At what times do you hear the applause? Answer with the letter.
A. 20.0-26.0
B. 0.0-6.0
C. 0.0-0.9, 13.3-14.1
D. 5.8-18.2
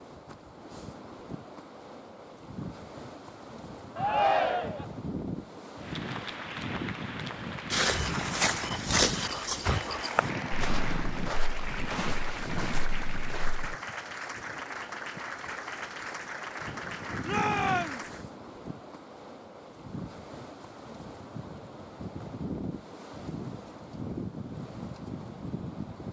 D.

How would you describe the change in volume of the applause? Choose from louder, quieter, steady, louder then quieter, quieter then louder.
steady.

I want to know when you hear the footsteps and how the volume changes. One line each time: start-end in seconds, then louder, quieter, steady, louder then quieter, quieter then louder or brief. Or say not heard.
7.7-13.8 quieter.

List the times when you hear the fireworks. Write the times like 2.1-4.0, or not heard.
not heard.